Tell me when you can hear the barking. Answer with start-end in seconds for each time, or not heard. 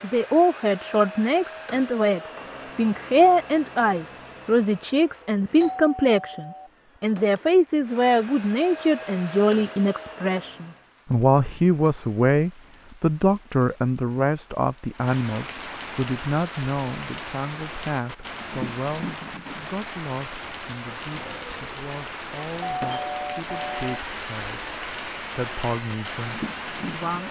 not heard.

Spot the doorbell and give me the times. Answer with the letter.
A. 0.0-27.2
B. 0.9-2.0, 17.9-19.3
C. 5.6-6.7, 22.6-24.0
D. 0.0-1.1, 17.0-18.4
C.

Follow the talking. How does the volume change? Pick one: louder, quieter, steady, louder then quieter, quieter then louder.
quieter.